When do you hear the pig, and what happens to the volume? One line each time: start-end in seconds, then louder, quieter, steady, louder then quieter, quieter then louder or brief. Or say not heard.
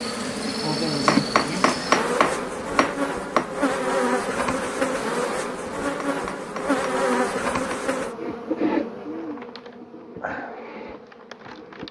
not heard.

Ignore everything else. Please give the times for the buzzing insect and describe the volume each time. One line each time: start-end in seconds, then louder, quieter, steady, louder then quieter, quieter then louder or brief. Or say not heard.
0.0-11.8 quieter.